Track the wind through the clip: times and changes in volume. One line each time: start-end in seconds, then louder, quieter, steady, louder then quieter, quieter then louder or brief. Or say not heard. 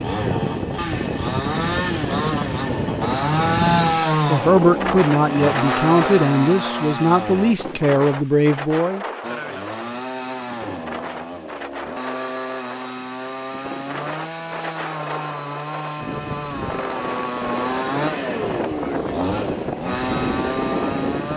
0.0-21.3 quieter then louder.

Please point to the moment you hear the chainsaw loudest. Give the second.
4 s.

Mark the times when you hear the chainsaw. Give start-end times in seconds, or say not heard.
0.0-7.5, 9.2-21.3.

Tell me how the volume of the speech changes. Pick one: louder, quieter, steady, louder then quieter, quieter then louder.
steady.